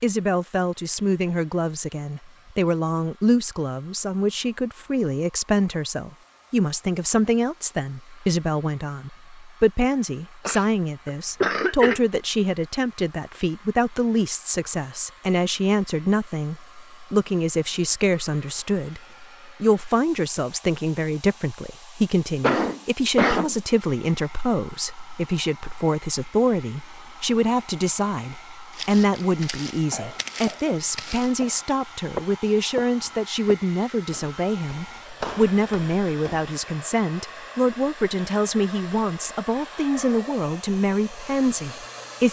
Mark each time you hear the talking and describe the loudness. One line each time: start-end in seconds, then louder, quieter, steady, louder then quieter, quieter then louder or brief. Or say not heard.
0.0-42.2 steady.